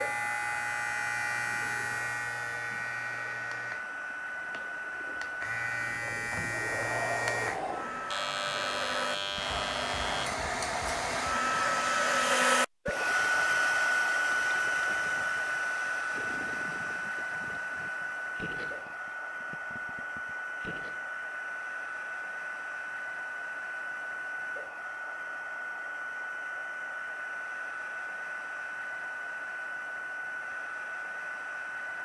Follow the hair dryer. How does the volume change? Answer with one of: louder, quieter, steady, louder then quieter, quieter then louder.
louder then quieter.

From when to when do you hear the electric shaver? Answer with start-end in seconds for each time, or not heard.
0.0-10.3.